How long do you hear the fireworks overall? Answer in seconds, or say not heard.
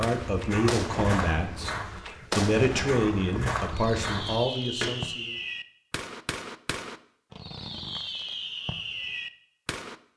10 s.